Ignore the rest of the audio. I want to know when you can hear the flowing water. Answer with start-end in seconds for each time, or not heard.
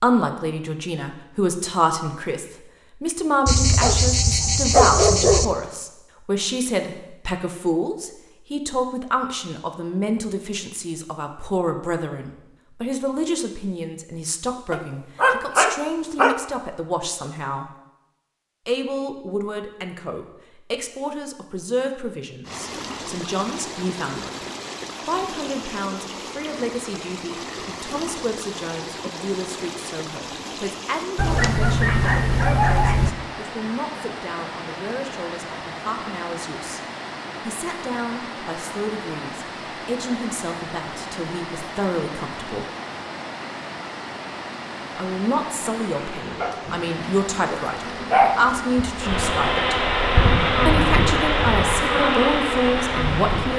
22.4-53.5.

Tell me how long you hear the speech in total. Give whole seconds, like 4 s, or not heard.
48 s.